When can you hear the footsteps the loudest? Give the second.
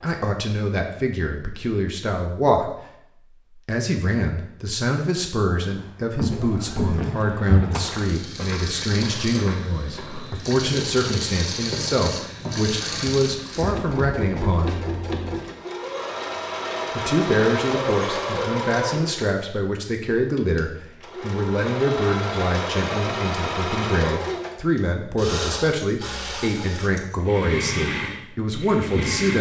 7 s.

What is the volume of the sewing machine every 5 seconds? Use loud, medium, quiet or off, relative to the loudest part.
off, medium, loud, loud, loud, loud.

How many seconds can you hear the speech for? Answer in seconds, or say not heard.
26 s.